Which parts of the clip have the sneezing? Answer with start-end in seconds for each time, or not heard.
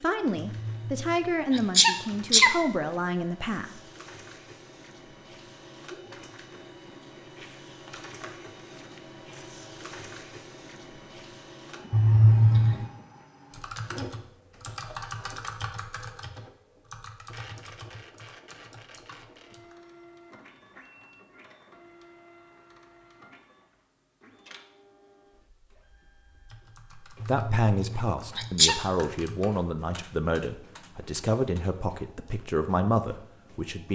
0.6-2.5, 11.9-12.8, 27.2-28.8.